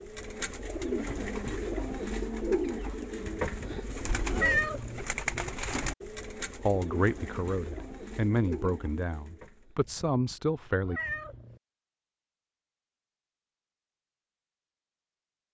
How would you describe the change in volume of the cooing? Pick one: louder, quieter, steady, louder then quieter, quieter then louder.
quieter.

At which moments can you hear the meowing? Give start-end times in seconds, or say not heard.
3.2-5.0, 9.8-11.6.